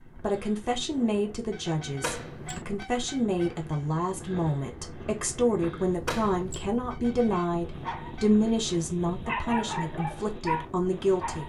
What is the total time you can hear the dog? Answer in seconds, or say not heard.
4 s.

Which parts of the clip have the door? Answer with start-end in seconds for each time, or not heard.
2.0-2.6, 6.0-6.7.